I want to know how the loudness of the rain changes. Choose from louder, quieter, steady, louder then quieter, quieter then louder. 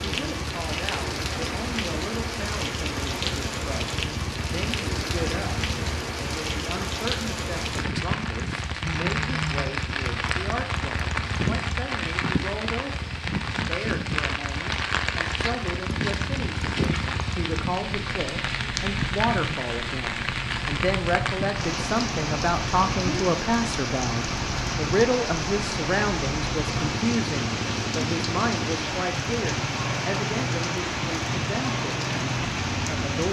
steady.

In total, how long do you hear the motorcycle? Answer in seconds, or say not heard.
33 s.